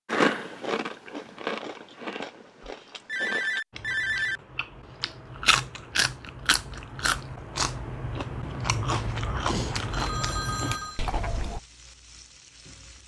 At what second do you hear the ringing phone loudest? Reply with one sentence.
The loudest moment of the ringing phone is at 4 seconds.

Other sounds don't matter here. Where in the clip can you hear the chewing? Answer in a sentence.
You can hear the chewing from 0.1 to 11.6 s.